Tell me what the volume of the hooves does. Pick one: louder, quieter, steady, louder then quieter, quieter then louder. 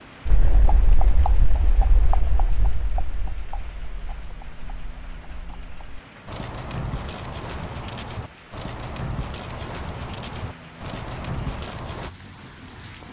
quieter then louder.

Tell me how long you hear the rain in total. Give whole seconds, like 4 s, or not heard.
13 s.